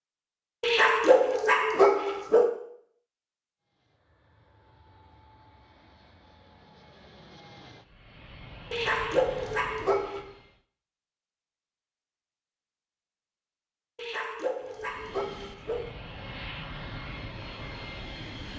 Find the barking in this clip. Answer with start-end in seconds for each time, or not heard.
0.6-2.5, 8.7-10.2, 13.9-15.9.